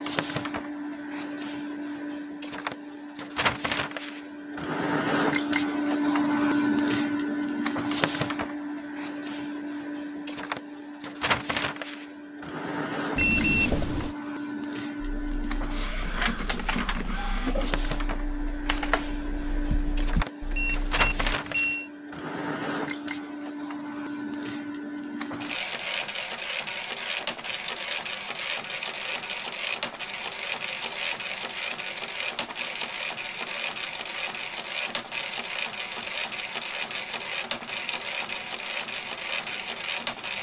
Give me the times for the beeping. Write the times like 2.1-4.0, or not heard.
13.2-14.1, 20.6-21.9.